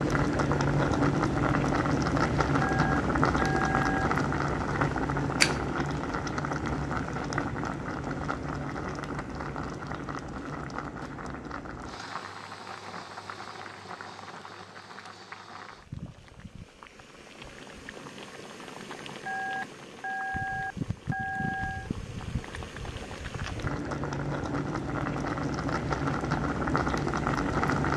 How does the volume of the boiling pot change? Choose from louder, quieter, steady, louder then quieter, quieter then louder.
quieter then louder.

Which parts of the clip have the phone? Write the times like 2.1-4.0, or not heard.
2.6-4.1, 19.2-21.9.